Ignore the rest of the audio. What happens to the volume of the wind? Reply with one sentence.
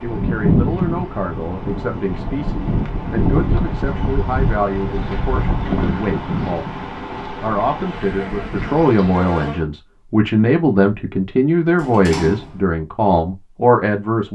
The volume of the wind goes down.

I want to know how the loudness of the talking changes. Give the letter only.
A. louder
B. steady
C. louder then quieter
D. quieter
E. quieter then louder
A.